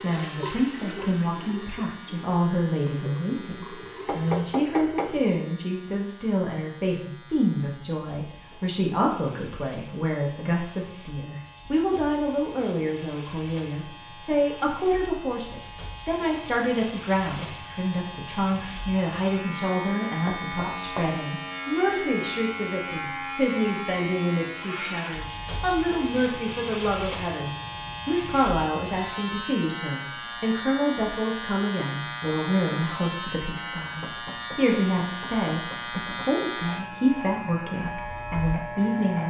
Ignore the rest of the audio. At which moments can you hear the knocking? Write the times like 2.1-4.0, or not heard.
4.0-5.2, 20.2-21.2, 34.0-36.5.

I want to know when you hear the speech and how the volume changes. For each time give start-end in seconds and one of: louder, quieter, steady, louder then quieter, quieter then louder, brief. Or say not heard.
0.0-39.2 steady.